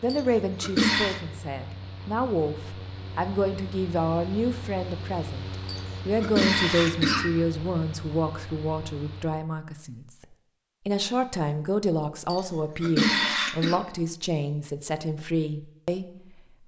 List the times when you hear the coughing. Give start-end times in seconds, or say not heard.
0.1-1.2, 5.7-7.3, 12.2-13.8.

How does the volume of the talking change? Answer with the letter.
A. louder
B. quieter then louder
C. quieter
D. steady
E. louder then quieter
D.